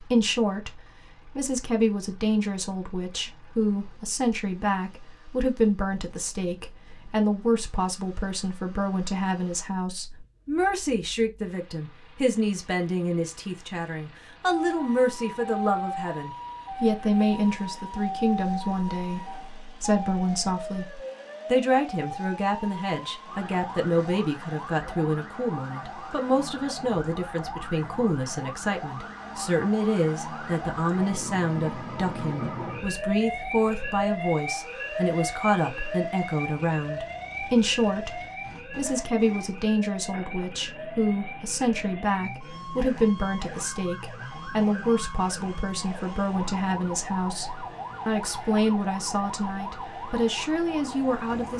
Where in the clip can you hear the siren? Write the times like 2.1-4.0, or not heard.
14.6-51.5.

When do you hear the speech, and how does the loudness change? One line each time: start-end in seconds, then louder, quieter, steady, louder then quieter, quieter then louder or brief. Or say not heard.
0.0-51.5 steady.